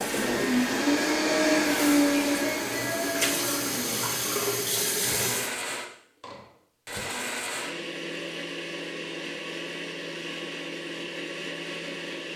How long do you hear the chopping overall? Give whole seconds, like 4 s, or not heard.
not heard.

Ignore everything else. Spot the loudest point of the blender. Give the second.
2 s.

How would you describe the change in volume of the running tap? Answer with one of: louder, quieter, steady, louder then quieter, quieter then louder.
louder.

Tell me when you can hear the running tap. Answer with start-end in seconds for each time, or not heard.
0.0-5.5.